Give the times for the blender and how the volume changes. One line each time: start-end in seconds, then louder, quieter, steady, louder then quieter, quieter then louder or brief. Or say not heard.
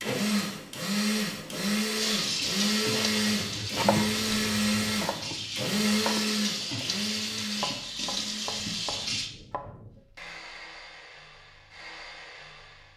0.0-12.9 quieter.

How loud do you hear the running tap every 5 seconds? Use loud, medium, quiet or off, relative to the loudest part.
loud, loud, off.